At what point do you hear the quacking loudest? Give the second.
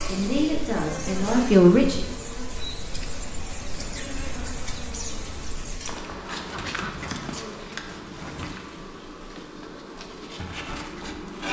7 s.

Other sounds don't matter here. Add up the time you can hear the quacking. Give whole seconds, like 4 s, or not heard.
2 s.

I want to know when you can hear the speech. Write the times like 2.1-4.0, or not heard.
0.1-2.1.